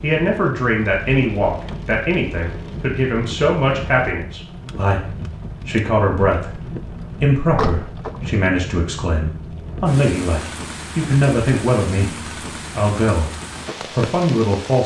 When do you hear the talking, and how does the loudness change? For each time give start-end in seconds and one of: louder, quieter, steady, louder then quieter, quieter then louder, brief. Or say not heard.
0.0-13.3 steady
13.9-14.8 brief.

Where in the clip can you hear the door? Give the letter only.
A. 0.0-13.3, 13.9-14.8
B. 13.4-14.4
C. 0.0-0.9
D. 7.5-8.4
D.